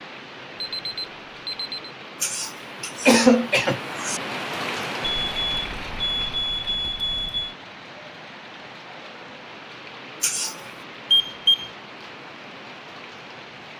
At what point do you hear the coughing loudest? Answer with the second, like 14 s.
3 s.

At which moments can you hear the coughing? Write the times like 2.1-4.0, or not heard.
2.2-4.2, 10.2-10.7.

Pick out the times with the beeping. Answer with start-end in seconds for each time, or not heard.
0.6-1.8, 5.0-7.5, 11.1-11.7.